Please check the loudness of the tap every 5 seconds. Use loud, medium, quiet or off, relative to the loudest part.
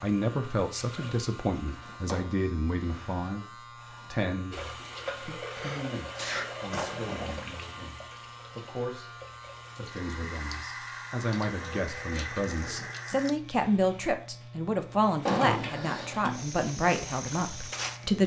medium, loud, loud, off.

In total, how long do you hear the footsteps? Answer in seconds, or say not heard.
2 s.